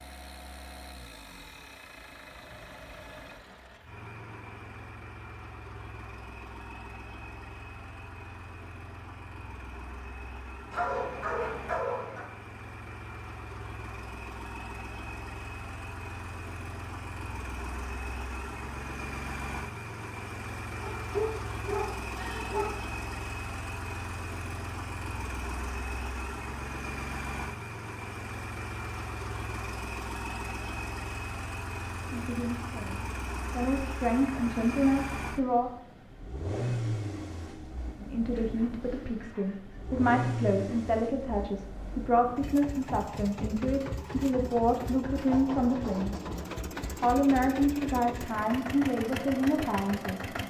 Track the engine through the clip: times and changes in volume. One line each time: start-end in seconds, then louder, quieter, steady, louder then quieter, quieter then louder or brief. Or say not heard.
0.0-50.4 louder.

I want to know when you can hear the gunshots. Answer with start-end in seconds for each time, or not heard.
not heard.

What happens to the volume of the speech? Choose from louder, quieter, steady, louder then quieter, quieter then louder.
steady.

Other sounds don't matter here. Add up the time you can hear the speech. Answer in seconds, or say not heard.
15 s.